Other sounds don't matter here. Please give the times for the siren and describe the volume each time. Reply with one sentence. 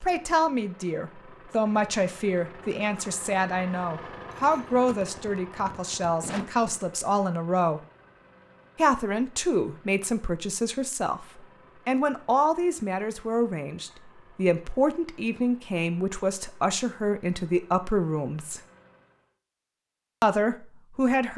You can't hear the siren here.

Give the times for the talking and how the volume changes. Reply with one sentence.
The talking can be heard from 0.0 to 7.8 s, at a steady volume; from 8.8 to 18.6 s, at a steady volume; and briefly from 20.2 to 21.3 s.